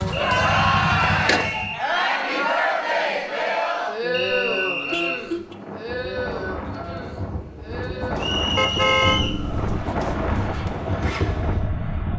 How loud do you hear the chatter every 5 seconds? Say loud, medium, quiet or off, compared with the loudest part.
loud, medium, quiet.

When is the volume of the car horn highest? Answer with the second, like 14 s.
9 s.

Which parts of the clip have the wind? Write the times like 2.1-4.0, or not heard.
5.4-12.1.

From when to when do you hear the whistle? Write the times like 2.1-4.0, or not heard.
0.1-1.8, 4.1-5.2, 8.2-9.4.